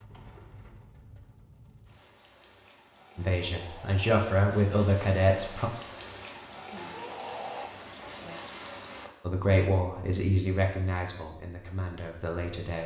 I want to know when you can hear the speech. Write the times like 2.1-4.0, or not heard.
3.1-5.7, 9.2-12.8.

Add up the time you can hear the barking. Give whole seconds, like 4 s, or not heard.
not heard.